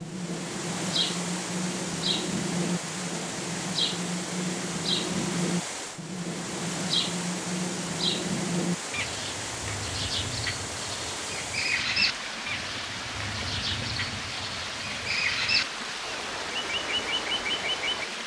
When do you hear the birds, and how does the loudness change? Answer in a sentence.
The birds can be heard from 0.0 to 18.1 s, at a steady volume.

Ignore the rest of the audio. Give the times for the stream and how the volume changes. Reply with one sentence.
You can hear the stream from 0.0 to 18.2 s, at a steady volume.